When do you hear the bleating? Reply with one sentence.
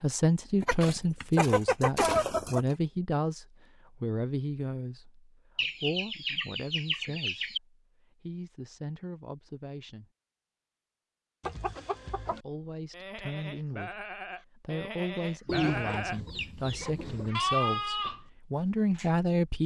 The bleating can be heard from 12.9 to 19.1 s.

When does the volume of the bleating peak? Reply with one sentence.
The volume of the bleating peaks at 18 seconds.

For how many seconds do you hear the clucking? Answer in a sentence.
The clucking can be heard for 7 seconds in total.